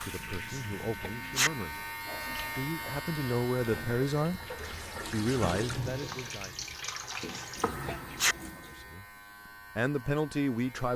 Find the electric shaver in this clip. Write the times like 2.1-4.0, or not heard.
0.0-10.9.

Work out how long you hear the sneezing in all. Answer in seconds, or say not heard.
2 s.